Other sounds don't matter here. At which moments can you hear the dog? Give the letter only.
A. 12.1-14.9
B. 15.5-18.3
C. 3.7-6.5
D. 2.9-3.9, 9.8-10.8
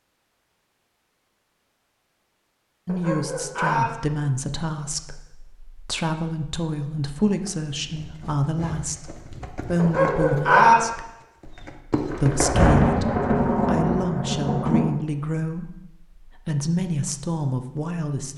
D.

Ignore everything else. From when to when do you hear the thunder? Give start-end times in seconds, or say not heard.
12.1-14.9.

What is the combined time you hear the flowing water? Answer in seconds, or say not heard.
not heard.